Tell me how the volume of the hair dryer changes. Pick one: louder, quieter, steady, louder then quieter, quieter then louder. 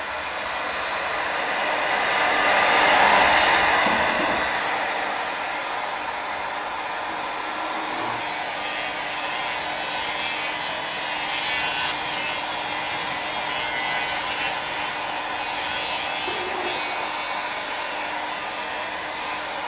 quieter.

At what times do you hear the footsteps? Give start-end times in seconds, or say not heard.
not heard.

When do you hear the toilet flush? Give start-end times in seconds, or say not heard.
3.9-4.5, 7.0-8.2, 16.2-17.1.